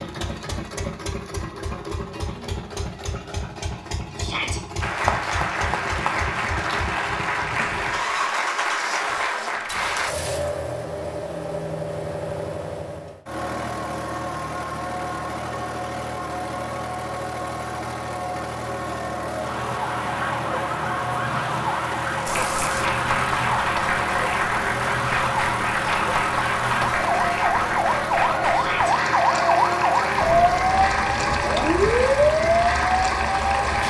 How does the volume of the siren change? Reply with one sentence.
The loudness of the siren goes up.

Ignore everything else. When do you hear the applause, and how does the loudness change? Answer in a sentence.
The applause can be heard from 4.8 to 10.2 s, at a steady volume; and from 22.2 to 33.8 s, at a steady volume.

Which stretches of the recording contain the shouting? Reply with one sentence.
The shouting can be heard from 4.2 to 4.6 s and from 28.5 to 28.9 s.